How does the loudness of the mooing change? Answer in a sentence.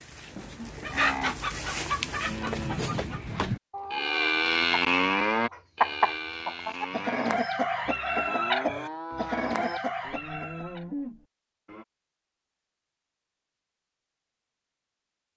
The volume of the mooing goes up, then down.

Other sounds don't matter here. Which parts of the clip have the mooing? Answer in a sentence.
The mooing can be heard from 0.7 to 11.8 s.